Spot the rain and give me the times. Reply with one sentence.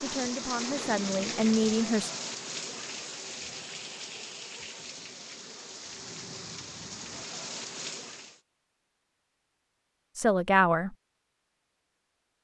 You can hear the rain from 0.0 to 8.4 s.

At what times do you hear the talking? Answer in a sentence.
The talking can be heard from 0.0 to 2.1 s and from 10.2 to 10.9 s.